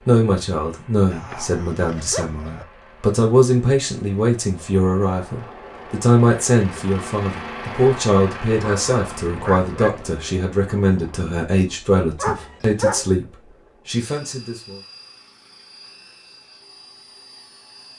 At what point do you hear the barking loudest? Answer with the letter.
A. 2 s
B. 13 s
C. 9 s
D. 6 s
B.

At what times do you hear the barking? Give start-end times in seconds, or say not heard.
1.1-2.6, 8.5-10.2, 12.2-13.1.